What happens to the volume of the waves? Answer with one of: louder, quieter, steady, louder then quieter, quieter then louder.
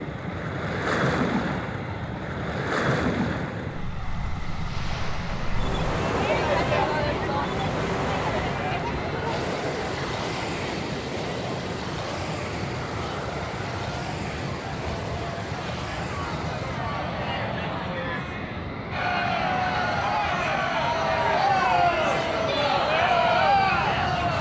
quieter.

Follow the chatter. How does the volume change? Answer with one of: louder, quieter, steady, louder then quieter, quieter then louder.
quieter then louder.